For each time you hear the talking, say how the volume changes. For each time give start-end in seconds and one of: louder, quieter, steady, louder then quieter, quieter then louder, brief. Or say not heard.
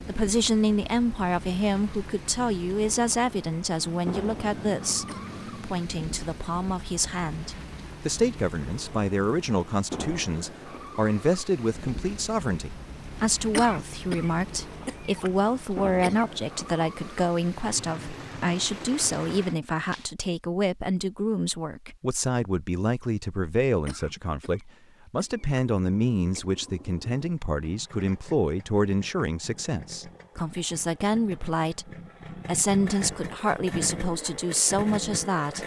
0.1-35.6 steady.